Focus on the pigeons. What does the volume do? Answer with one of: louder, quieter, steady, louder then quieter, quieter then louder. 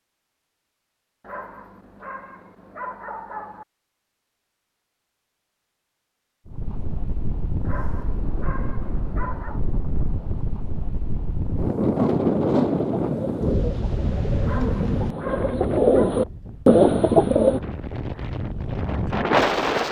louder.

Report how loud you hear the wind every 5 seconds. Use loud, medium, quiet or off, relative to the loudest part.
off, medium, loud, loud.